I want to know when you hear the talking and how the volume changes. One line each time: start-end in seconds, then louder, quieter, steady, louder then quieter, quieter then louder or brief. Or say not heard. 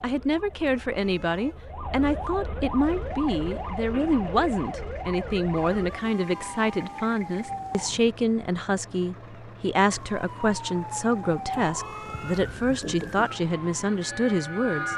0.0-14.9 steady.